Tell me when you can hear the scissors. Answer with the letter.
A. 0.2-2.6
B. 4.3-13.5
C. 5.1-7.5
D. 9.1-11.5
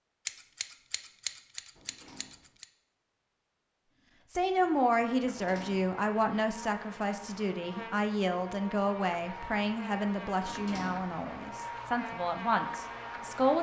A.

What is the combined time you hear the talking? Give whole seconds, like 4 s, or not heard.
9 s.